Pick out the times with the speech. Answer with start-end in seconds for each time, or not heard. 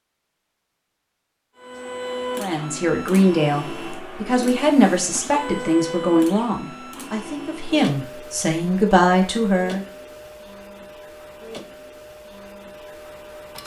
2.4-9.8.